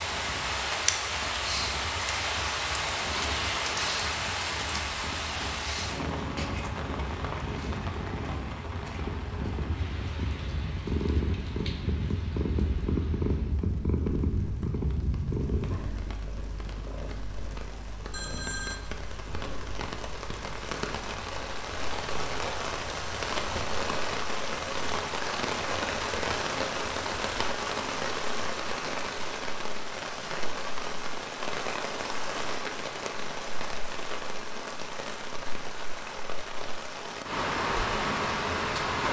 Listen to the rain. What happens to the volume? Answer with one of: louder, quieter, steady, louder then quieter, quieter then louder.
quieter then louder.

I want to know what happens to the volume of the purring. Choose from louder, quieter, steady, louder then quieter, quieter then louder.
louder then quieter.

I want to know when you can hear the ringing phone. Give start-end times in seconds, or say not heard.
18.1-18.8.